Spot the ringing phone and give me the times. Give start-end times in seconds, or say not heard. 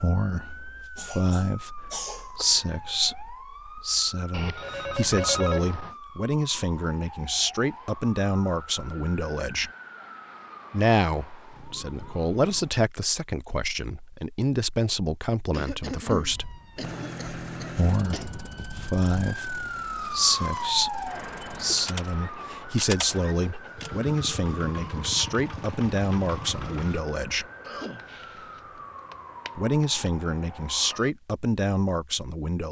4.3-6.0.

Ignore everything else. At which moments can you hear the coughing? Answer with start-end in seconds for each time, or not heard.
0.9-2.5, 15.5-18.3, 27.6-28.8.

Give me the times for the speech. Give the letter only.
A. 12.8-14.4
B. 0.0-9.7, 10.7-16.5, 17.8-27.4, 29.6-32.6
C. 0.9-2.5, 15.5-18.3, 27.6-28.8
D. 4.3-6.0
B.